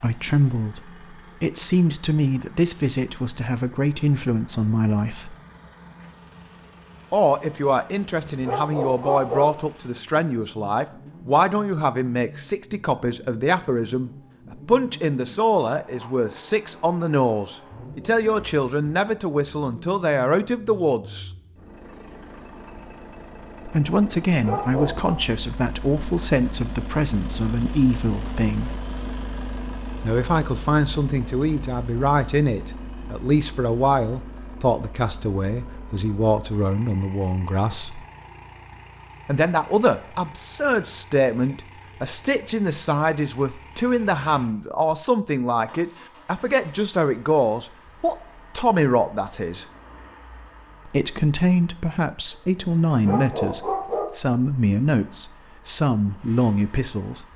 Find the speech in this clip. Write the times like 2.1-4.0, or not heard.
0.0-5.3, 7.1-21.3, 23.6-28.8, 30.0-38.0, 39.2-49.6, 50.9-57.2.